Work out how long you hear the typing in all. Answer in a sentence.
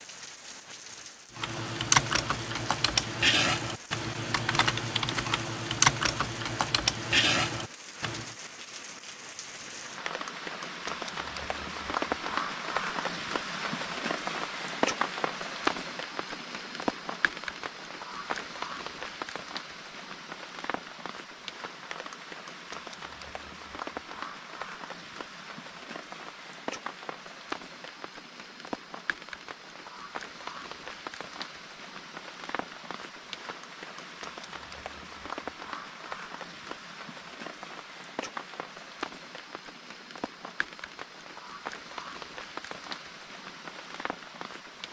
The typing can be heard for 7 seconds in total.